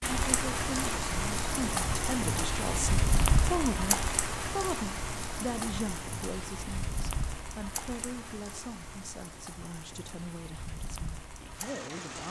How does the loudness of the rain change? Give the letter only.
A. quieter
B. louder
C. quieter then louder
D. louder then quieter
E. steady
A.